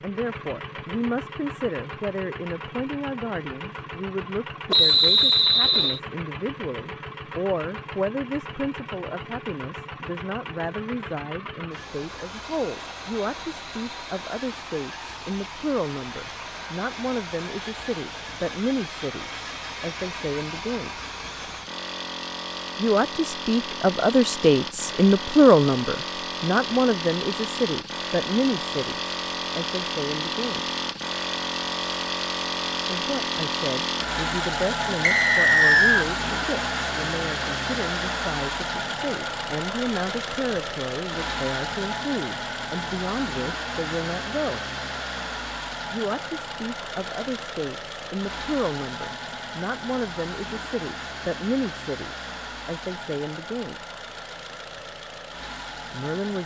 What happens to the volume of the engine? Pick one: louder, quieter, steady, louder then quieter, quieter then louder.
louder then quieter.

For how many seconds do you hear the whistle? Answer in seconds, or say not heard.
2 s.